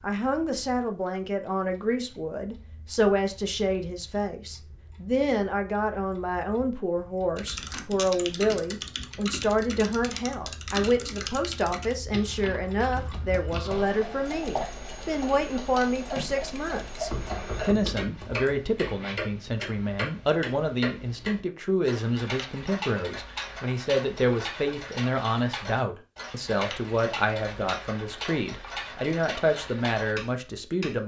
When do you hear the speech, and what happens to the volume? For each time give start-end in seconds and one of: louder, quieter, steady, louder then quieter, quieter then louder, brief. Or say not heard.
0.0-31.0 steady.